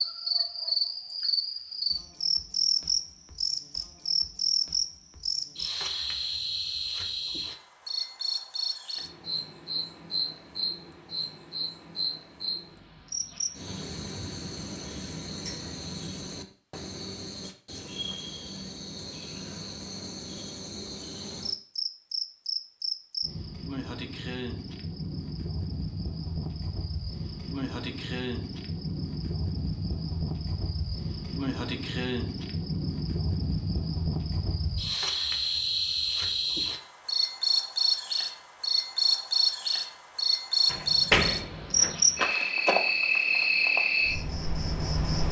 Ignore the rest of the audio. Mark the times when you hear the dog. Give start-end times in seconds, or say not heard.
not heard.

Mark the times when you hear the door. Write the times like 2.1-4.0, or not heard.
40.7-42.0.